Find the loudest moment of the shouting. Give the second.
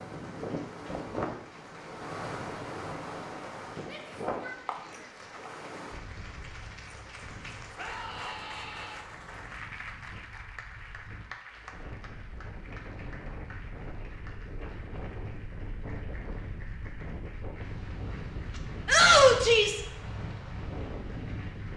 19 s.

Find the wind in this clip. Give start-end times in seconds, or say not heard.
0.0-21.7.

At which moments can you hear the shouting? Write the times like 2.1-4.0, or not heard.
3.8-5.1, 7.8-9.0, 18.9-19.8.